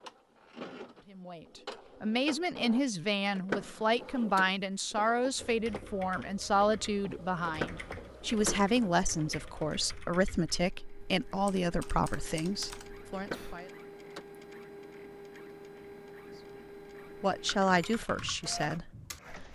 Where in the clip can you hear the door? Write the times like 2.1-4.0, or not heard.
3.4-4.5, 7.4-8.8, 13.1-14.2.